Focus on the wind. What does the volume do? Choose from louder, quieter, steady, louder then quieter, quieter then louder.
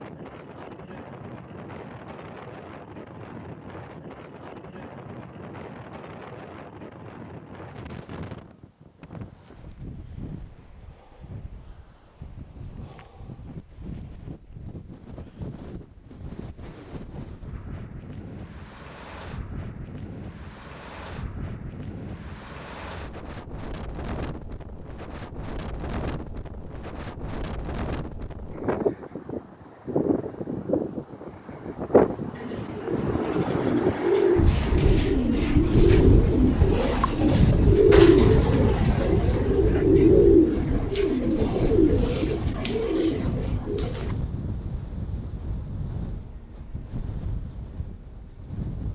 louder then quieter.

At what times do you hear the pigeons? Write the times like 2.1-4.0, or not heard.
32.3-44.1.